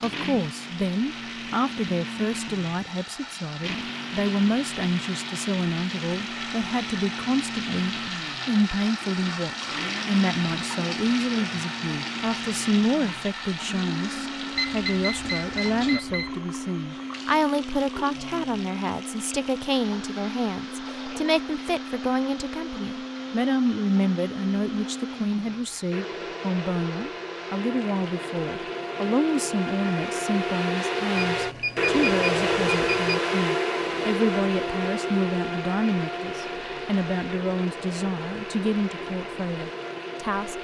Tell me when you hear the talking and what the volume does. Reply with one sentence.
The talking can be heard from 0.0 to 40.6 s, at a steady volume.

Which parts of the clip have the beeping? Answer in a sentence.
The beeping can be heard from 14.6 to 16.4 s and from 31.1 to 33.2 s.